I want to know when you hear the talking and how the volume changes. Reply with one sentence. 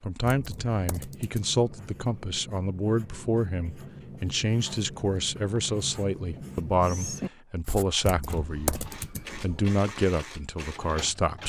The talking can be heard from 0.0 to 11.4 s, at a steady volume.